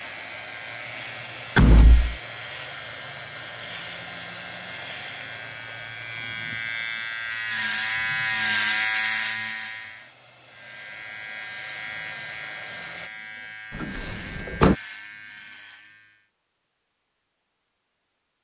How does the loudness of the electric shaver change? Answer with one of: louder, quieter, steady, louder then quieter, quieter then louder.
louder then quieter.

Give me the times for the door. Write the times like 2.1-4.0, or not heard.
1.6-2.1, 13.8-14.8.